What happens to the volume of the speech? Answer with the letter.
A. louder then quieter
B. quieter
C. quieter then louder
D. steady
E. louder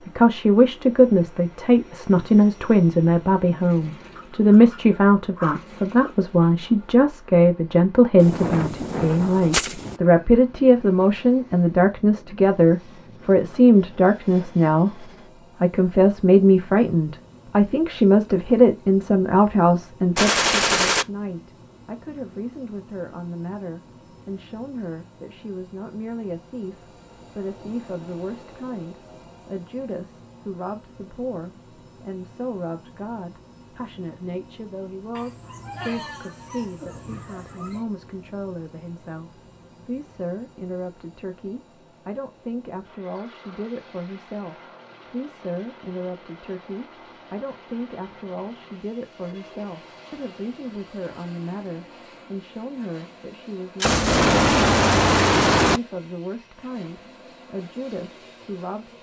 B.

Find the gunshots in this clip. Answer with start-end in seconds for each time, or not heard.
8.2-10.0, 20.1-21.1, 53.8-55.8.